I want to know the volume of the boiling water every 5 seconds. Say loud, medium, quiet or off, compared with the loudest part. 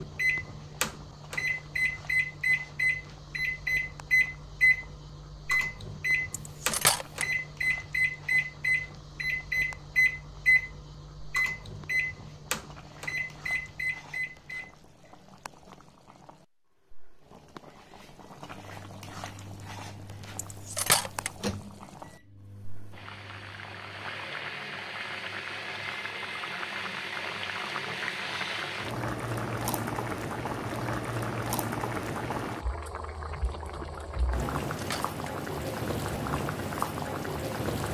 quiet, quiet, quiet, quiet, medium, loud, loud, loud.